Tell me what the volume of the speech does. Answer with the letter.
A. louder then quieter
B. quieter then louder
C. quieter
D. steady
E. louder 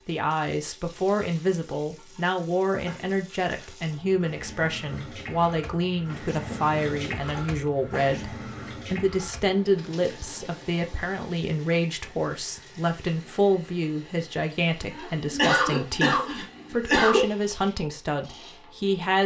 D.